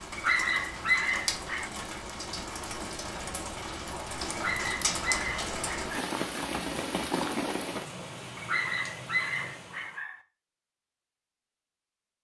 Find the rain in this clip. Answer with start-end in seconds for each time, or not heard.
0.0-10.0.